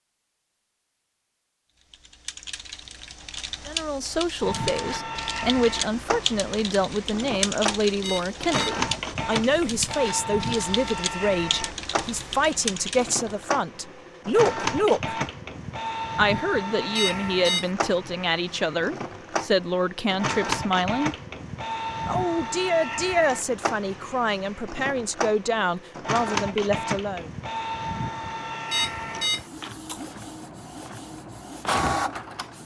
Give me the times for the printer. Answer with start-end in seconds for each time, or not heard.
4.4-32.6.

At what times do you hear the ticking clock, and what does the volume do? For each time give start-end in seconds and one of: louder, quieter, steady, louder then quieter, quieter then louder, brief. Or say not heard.
not heard.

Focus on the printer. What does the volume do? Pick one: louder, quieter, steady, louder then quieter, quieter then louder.
steady.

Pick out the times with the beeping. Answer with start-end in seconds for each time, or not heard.
8.0-8.8, 16.9-17.7, 28.7-29.5.